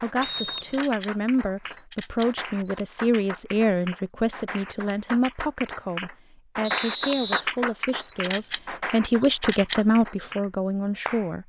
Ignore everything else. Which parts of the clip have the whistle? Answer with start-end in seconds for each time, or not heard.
0.2-0.8, 6.6-7.5.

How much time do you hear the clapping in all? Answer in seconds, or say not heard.
11 s.